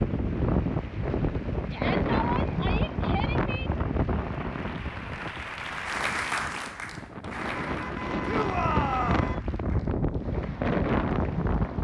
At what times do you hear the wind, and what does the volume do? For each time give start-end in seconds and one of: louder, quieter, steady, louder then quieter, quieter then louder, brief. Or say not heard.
0.0-11.7 quieter then louder.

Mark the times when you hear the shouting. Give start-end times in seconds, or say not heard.
1.7-3.7, 8.2-9.3.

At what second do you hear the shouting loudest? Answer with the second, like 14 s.
9 s.